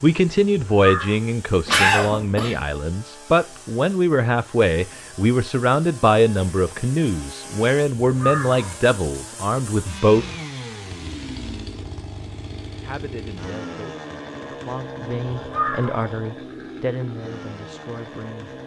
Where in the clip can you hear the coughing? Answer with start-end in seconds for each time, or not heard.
1.6-2.6.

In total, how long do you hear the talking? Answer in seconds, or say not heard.
16 s.